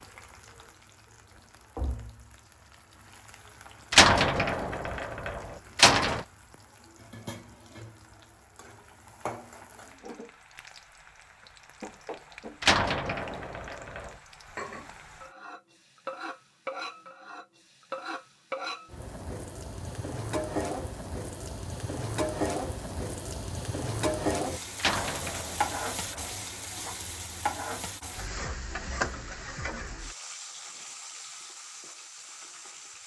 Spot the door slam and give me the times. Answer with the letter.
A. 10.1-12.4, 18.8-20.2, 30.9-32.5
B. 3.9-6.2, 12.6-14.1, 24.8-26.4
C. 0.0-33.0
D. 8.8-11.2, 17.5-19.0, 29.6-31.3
B.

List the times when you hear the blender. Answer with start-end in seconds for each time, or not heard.
not heard.